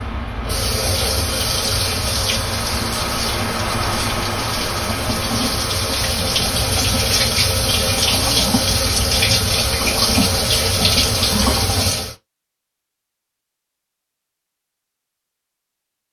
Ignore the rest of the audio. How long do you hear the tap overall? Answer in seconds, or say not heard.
12 s.